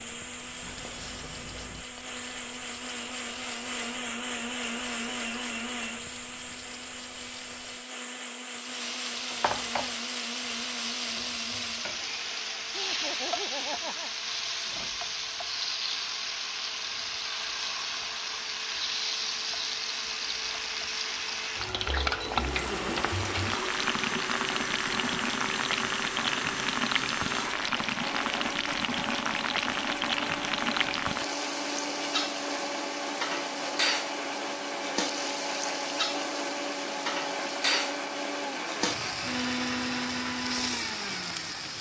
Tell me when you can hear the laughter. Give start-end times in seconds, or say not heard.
12.7-14.1, 22.6-23.1.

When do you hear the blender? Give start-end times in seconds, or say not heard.
0.0-41.7.